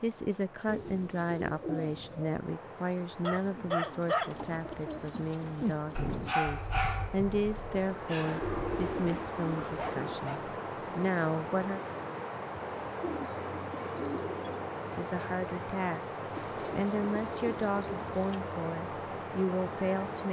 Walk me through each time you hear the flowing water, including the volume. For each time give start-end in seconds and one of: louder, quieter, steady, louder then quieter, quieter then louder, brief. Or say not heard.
0.0-20.2 louder.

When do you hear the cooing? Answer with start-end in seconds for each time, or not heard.
0.7-2.4, 4.3-6.3, 8.2-10.2, 13.0-14.7, 16.4-18.4.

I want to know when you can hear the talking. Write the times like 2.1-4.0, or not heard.
0.0-11.8, 14.8-20.2.